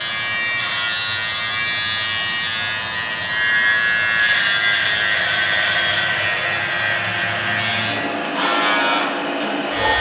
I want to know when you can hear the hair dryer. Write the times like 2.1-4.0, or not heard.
0.0-9.9.